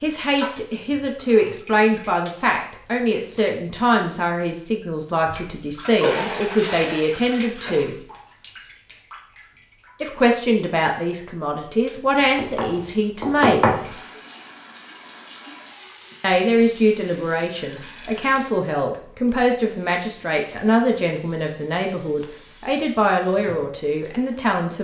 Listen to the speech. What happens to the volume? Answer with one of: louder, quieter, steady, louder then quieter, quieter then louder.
steady.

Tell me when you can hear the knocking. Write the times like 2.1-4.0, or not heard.
12.3-13.8.